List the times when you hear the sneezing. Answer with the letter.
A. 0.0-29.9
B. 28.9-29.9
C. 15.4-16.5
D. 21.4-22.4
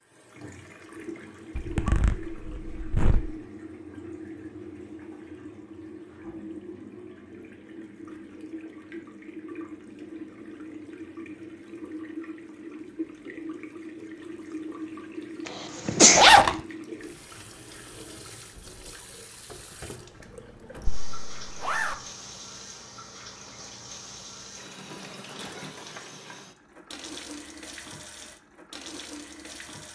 C.